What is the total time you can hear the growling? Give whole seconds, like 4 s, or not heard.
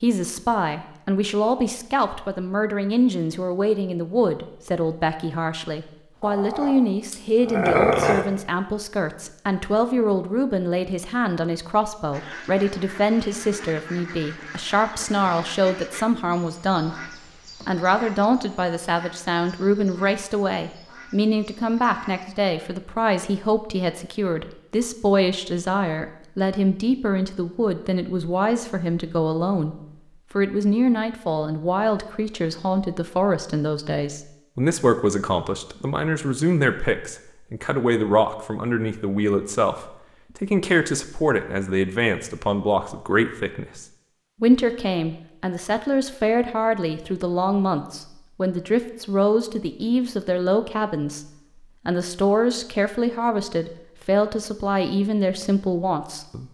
2 s.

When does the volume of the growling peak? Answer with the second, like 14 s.
8 s.